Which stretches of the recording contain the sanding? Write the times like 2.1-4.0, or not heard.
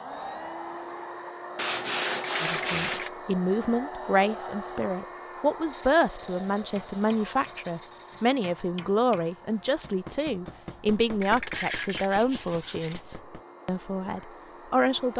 1.6-3.1, 5.7-8.4, 11.5-13.2.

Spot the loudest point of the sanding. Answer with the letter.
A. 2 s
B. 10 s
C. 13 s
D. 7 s
A.